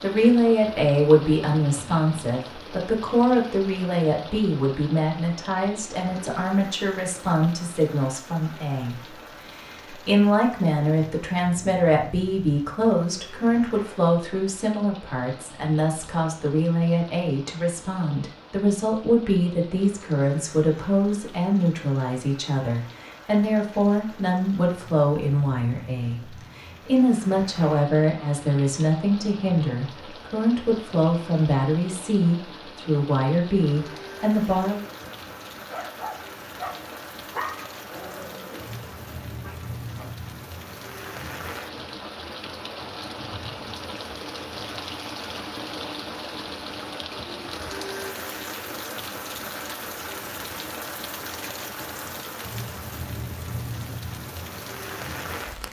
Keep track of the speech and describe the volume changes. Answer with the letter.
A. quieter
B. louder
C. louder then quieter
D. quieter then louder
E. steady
E.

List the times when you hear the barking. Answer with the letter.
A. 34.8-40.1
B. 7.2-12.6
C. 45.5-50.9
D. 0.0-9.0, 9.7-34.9
A.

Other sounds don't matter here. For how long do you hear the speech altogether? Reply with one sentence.
The speech can be heard for 34 seconds in total.